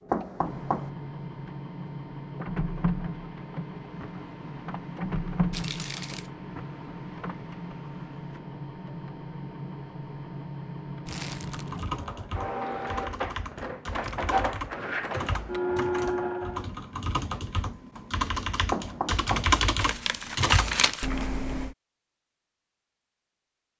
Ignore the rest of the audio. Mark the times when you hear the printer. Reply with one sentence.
The printer can be heard from 0.0 to 16.6 s.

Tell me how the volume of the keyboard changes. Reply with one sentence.
The volume of the keyboard goes up.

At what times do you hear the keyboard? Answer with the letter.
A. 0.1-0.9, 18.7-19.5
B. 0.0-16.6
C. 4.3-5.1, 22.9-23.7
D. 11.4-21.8
D.